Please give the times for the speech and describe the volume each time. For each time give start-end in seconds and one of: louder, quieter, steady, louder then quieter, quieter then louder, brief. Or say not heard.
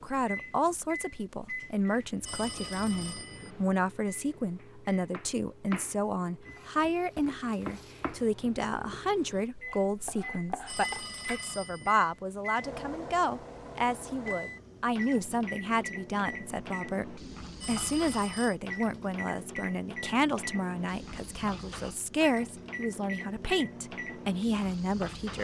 0.0-25.4 steady.